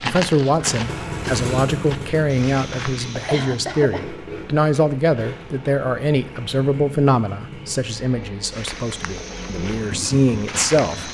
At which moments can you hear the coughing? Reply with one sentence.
The coughing can be heard from 3.2 to 4.0 s.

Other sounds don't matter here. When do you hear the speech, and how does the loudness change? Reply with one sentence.
You can hear the speech from 0.0 to 11.0 s, at a steady volume.